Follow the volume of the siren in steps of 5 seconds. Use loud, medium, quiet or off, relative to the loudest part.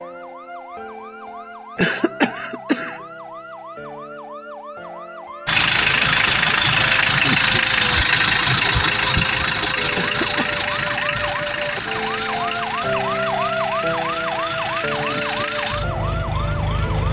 medium, medium, loud, loud.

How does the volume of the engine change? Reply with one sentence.
The loudness of the engine goes down.